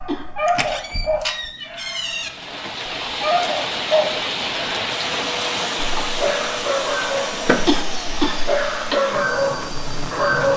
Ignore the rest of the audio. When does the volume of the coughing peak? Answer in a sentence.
The loudest moment of the coughing is at 8 seconds.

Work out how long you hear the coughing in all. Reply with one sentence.
You can hear the coughing for 2 seconds altogether.